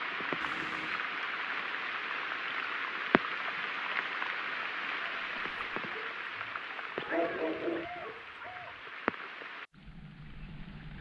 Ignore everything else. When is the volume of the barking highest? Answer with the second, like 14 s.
7 s.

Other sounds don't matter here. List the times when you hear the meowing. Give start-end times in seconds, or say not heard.
0.4-1.1, 7.0-8.8.